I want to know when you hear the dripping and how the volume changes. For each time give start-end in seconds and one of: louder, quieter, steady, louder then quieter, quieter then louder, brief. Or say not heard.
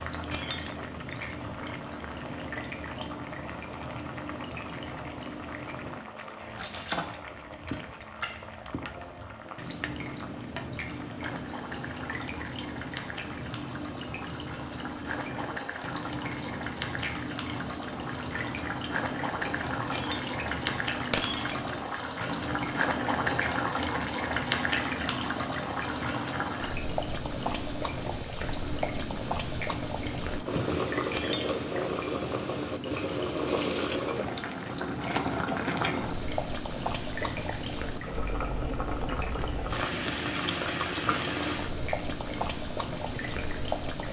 0.0-44.0 steady.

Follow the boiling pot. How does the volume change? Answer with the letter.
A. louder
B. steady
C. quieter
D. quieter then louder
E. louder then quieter
A.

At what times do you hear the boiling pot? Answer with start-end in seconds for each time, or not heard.
0.0-44.0.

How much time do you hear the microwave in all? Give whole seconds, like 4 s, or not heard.
not heard.